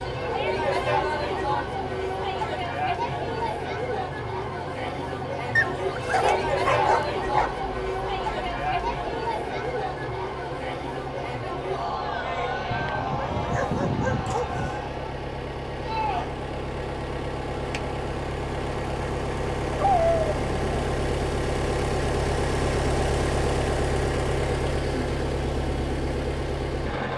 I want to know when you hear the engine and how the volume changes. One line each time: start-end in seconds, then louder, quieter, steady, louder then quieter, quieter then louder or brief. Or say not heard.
0.0-27.1 louder.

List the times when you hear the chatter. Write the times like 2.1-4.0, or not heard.
0.0-16.3.